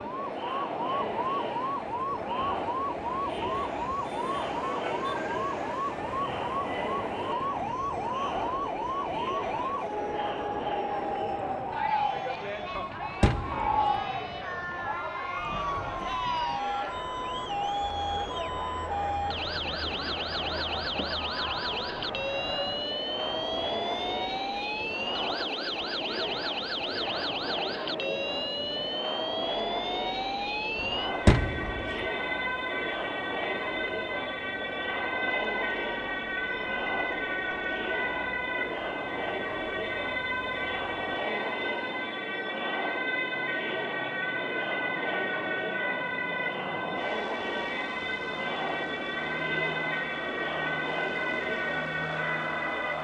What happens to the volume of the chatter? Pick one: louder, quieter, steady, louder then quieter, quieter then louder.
steady.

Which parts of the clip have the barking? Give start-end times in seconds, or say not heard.
not heard.